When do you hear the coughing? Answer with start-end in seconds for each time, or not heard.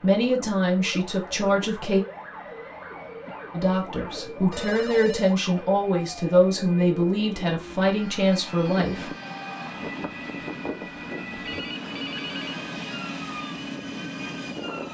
2.9-4.7.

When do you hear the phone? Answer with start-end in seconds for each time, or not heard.
4.5-5.3, 11.4-12.7.